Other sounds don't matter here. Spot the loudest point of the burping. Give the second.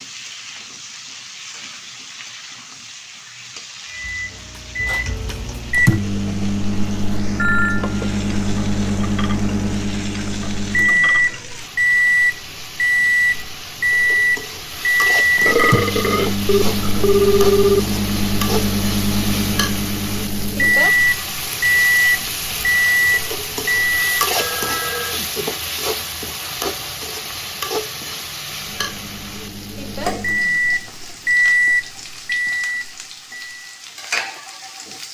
16 s.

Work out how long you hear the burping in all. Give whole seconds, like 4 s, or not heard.
2 s.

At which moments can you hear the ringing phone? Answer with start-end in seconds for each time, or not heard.
7.3-8.1, 16.4-17.8, 24.4-25.2.